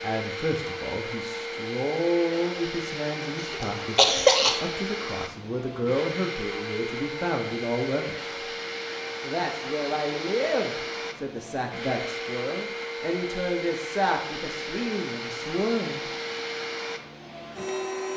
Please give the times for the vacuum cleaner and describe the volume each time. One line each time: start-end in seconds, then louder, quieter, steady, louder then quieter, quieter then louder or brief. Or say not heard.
0.0-18.1 steady.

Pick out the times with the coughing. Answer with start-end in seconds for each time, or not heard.
3.4-4.6.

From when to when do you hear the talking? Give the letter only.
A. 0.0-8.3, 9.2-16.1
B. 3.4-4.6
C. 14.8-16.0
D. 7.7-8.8
A.